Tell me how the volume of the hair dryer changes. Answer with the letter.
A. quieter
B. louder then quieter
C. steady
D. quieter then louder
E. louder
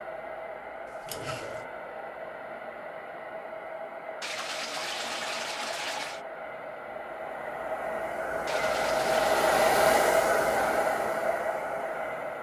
E.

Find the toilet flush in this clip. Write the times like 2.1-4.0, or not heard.
1.0-1.6, 4.2-6.2, 8.4-9.7.